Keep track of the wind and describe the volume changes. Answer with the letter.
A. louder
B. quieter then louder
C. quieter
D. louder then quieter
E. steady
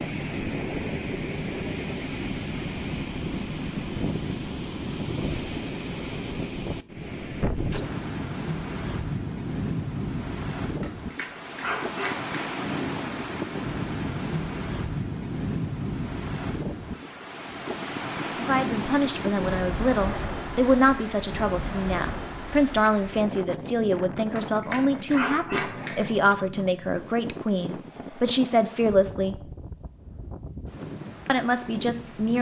C.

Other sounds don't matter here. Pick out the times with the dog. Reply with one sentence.
You can hear the dog from 10.6 to 12.3 s and from 24.1 to 26.1 s.